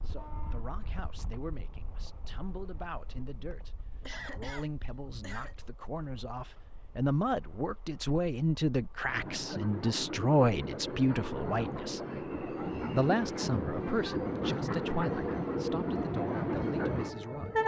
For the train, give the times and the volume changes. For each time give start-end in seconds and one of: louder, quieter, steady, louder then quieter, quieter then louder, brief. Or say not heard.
0.0-17.6 quieter then louder.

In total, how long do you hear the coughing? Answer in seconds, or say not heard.
2 s.